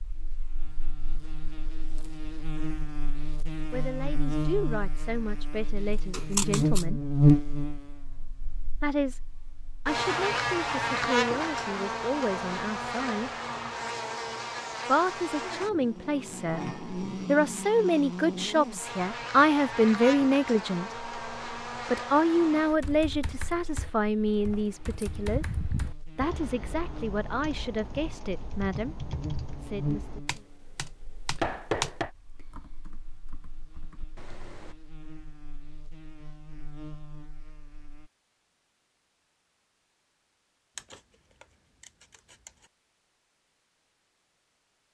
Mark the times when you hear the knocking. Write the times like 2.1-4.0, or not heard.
31.4-32.1.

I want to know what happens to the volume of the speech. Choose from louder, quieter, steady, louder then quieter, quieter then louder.
louder then quieter.